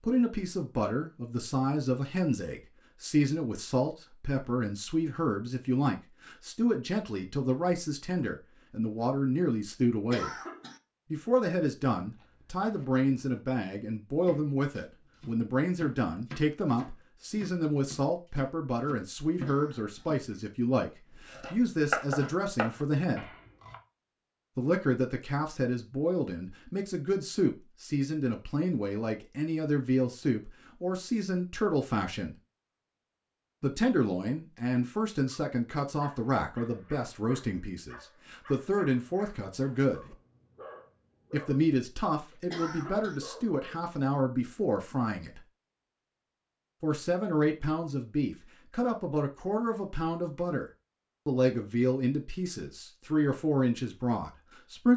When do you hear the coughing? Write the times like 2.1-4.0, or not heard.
10.1-10.8, 19.4-20.1, 42.5-43.2.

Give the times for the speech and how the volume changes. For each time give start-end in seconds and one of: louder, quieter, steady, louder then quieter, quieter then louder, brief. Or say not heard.
0.0-10.3 steady
11.1-23.4 steady
24.6-32.4 steady
33.6-40.0 quieter then louder
41.3-45.4 steady
46.8-54.9 steady.